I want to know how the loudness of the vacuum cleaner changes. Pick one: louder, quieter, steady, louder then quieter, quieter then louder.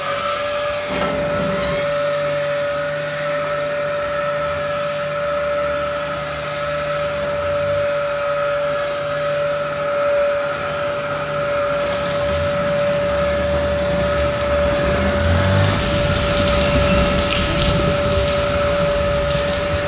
steady.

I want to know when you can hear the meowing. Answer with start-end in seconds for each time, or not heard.
0.8-1.9.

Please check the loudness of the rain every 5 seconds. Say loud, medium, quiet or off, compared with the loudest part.
quiet, quiet, medium, loud.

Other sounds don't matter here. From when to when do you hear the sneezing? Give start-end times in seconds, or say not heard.
not heard.